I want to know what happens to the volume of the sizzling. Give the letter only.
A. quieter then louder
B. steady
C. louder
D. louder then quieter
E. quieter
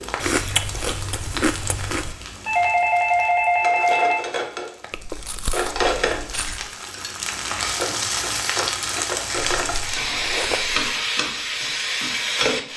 C.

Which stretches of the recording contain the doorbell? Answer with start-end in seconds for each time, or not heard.
2.5-4.2.